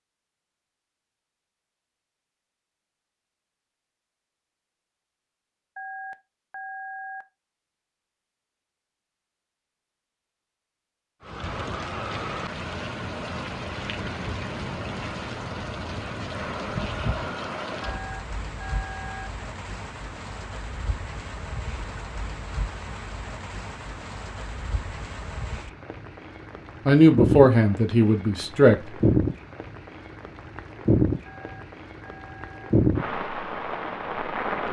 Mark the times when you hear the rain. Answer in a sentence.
You can hear the rain from 11.2 to 34.6 s.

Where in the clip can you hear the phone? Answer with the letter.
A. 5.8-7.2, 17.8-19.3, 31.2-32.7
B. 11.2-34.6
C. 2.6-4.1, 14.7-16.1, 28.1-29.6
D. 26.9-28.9
A.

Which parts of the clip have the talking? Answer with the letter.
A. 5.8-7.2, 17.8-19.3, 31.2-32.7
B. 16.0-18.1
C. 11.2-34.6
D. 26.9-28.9
D.